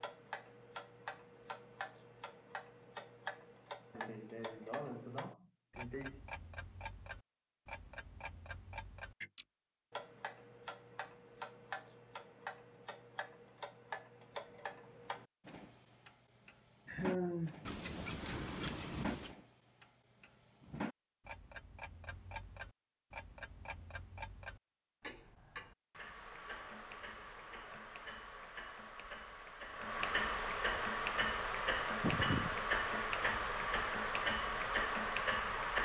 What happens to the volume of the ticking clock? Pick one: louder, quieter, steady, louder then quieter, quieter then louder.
louder.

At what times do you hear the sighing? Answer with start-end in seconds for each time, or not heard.
3.9-6.2, 16.9-17.6, 30.4-30.8, 31.6-32.5.